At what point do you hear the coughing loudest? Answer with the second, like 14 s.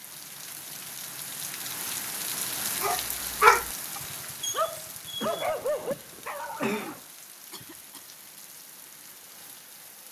7 s.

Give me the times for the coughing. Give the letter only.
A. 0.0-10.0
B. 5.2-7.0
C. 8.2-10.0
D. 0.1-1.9
B.